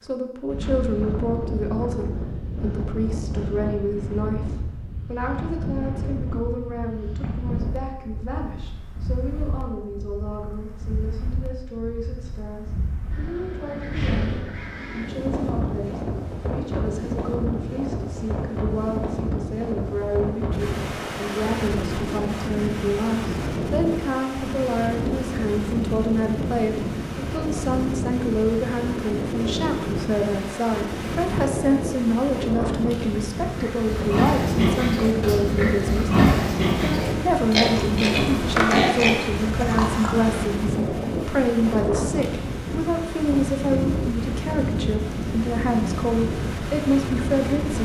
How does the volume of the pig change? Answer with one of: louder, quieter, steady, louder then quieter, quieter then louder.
steady.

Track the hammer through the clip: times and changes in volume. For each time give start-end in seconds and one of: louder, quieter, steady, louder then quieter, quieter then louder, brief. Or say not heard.
not heard.